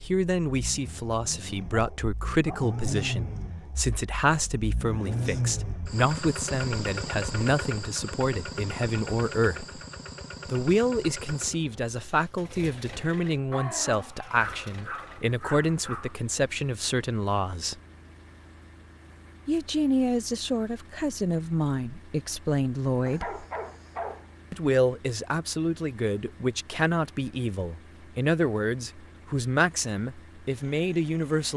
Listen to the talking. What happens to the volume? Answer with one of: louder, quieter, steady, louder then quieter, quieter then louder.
steady.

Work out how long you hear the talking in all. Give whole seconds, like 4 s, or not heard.
28 s.